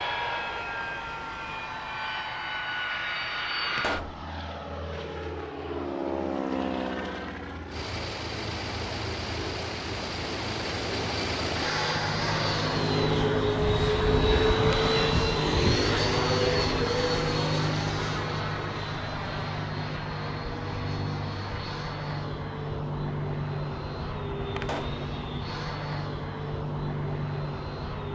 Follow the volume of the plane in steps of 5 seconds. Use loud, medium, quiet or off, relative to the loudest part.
medium, medium, loud, loud, medium, medium.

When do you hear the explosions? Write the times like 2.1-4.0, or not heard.
3.8-4.2, 24.6-25.1.